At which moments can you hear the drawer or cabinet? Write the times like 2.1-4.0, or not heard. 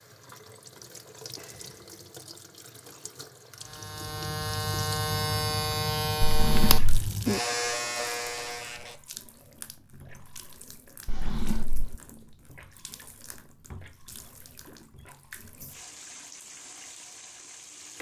6.2-6.9, 11.1-11.9.